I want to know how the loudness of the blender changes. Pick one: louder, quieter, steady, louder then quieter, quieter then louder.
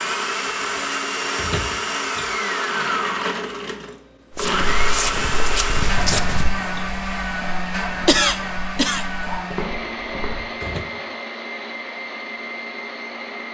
quieter.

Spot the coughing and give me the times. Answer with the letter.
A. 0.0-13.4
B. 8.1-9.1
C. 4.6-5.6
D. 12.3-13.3
B.